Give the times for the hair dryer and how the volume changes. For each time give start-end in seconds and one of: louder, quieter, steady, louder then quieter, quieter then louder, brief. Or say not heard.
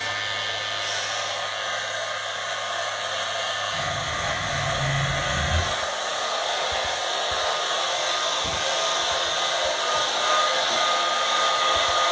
0.0-12.0 louder.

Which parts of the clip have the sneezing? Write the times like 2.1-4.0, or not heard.
0.8-1.4.